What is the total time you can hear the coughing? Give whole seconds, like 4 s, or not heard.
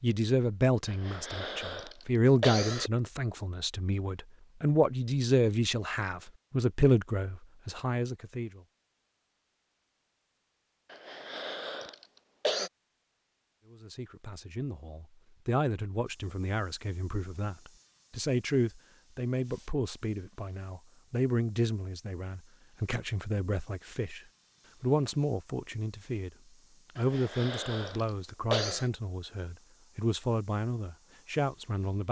6 s.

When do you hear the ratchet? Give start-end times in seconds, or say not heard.
not heard.